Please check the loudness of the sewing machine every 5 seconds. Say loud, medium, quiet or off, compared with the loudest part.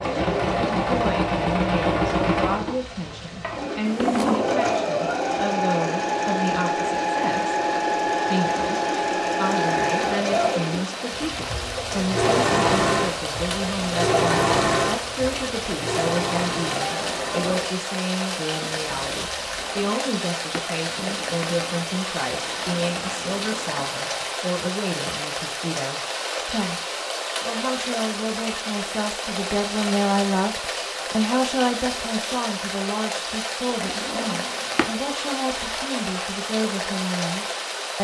loud, loud, loud, medium, quiet, off, off, off.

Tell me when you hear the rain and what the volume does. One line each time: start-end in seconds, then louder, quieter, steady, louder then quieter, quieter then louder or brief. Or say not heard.
0.0-38.0 louder.